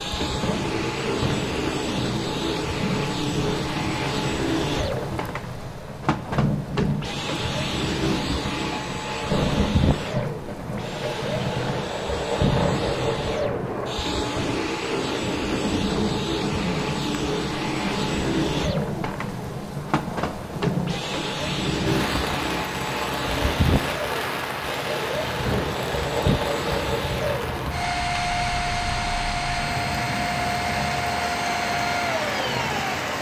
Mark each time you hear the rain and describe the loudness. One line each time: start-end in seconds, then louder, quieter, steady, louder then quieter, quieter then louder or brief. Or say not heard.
0.0-33.1 steady.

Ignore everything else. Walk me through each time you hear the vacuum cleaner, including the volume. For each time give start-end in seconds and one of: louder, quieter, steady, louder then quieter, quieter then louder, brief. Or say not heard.
0.0-33.1 steady.